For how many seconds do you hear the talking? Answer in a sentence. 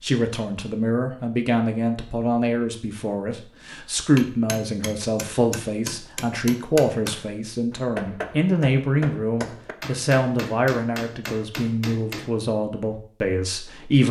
You can hear the talking for 14 seconds altogether.